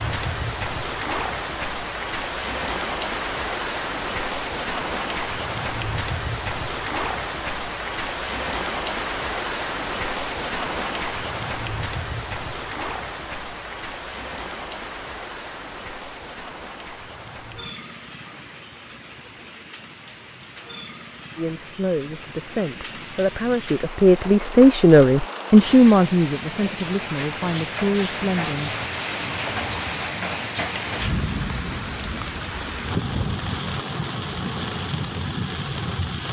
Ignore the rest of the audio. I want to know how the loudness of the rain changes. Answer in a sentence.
The loudness of the rain goes down, then up.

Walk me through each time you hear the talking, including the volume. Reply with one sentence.
The talking can be heard from 21.4 to 28.7 s, getting louder then quieter.